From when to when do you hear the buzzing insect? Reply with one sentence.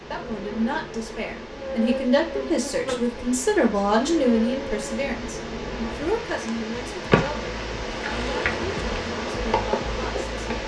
You can hear the buzzing insect from 0.0 to 10.6 s.